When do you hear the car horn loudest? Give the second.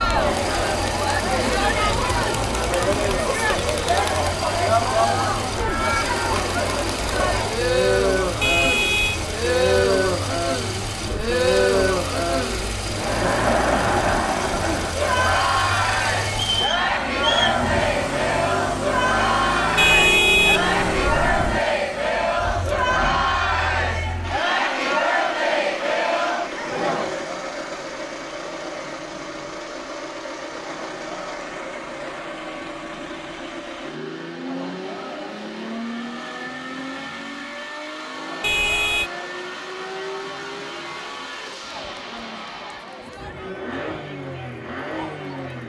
20 s.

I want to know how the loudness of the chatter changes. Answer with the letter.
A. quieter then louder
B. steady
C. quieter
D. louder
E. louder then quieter
C.